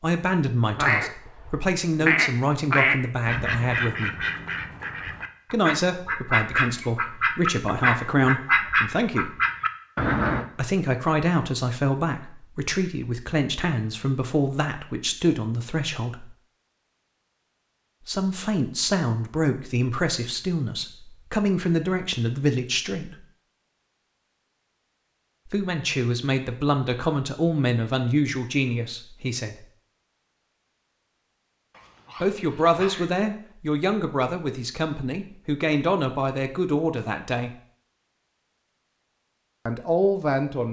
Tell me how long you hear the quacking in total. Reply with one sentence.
You can hear the quacking for 10 seconds altogether.